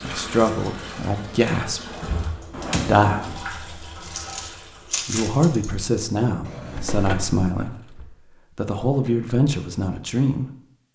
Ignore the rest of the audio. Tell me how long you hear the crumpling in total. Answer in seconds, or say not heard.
2 s.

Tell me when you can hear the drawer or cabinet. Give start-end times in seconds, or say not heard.
2.5-3.5, 6.5-8.2.